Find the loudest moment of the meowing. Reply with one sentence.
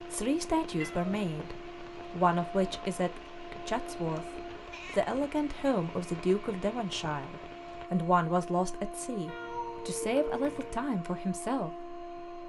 The volume of the meowing peaks at 10 seconds.